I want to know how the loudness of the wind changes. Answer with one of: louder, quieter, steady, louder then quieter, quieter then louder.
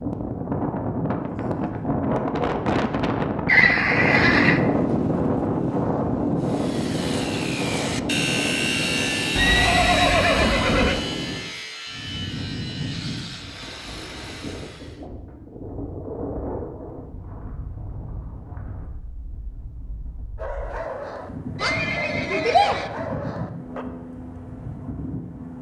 quieter.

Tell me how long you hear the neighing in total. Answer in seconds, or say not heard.
4 s.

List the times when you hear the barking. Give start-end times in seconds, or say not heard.
20.4-23.9.